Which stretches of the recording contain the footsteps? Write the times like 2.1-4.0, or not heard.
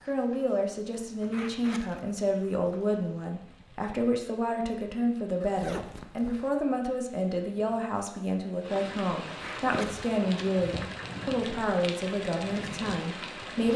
not heard.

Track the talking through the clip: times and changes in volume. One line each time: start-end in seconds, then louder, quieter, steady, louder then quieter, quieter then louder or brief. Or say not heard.
0.1-13.7 steady.